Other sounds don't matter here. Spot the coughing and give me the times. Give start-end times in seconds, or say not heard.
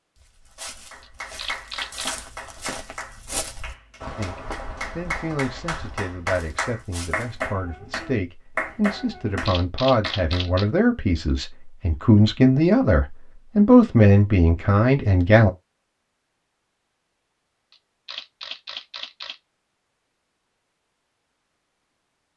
not heard.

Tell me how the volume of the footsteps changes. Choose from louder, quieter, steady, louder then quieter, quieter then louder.
louder then quieter.